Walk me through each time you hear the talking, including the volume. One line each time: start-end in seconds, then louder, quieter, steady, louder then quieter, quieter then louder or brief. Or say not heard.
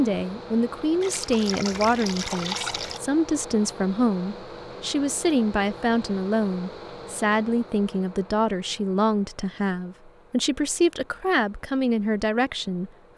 0.0-13.1 steady.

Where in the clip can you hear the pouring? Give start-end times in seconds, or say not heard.
1.0-3.0.